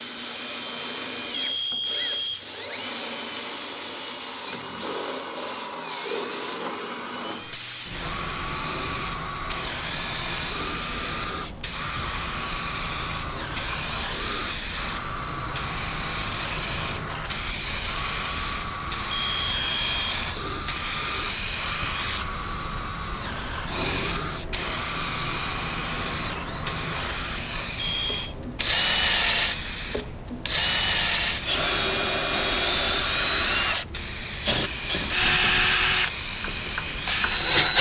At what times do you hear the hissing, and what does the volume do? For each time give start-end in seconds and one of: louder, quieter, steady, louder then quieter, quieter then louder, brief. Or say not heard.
0.0-37.5 steady.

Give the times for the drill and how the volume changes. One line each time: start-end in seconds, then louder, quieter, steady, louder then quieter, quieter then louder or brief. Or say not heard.
0.0-37.7 louder.